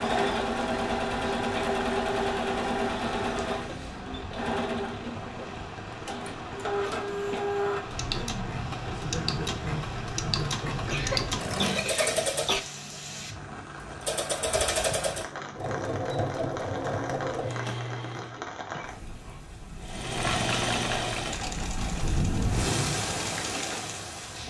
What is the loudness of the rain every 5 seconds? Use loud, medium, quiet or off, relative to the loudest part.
medium, medium, medium, medium, loud.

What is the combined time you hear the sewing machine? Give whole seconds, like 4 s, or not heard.
23 s.